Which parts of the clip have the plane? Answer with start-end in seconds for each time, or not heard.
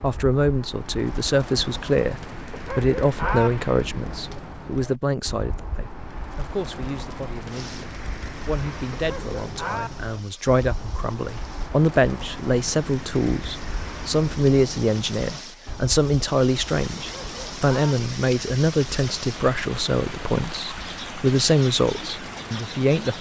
not heard.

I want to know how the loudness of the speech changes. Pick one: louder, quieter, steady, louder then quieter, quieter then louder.
quieter then louder.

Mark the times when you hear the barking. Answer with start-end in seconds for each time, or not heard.
2.5-3.5, 8.9-9.9, 16.9-17.9.